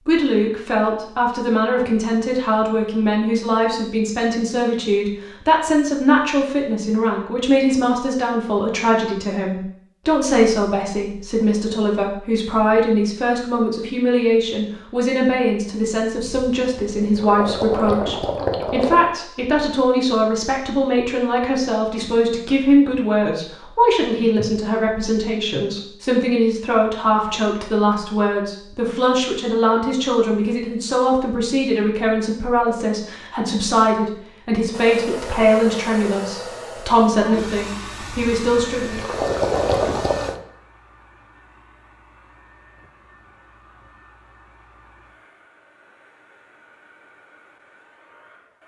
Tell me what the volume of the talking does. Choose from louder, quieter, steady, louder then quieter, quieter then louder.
steady.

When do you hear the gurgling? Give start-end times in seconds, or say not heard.
16.1-19.1, 38.0-40.4.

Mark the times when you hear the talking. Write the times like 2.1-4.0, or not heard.
0.1-39.0.